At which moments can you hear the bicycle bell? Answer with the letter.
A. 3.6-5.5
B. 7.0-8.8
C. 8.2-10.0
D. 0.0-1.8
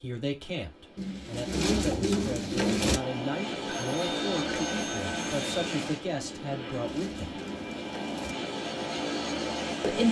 A.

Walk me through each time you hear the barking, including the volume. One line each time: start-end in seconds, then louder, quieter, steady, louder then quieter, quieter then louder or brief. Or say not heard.
not heard.